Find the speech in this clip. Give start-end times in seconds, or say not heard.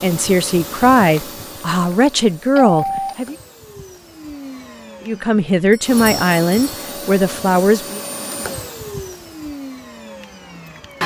0.0-3.4, 5.0-8.0.